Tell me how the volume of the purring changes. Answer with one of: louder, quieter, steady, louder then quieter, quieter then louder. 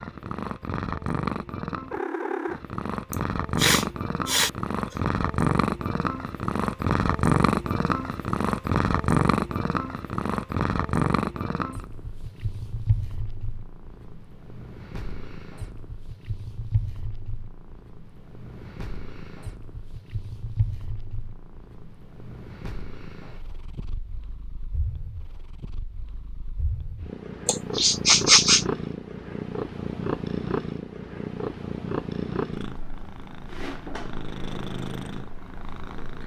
quieter then louder.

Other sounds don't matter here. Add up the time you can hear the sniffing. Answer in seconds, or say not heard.
3 s.